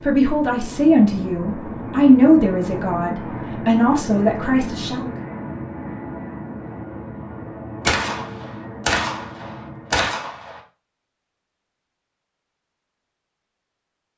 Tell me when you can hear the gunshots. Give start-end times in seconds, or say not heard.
7.8-10.6.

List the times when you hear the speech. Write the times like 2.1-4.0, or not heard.
0.0-5.1.